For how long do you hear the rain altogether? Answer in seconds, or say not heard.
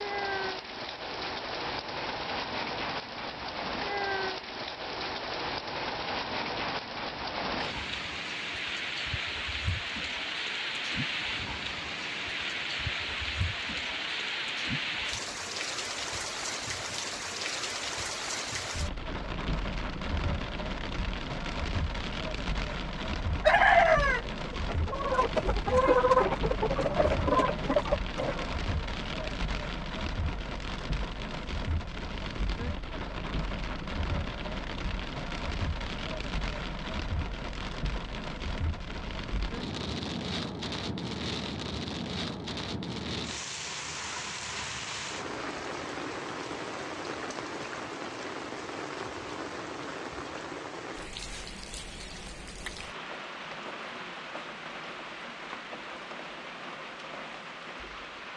58 s.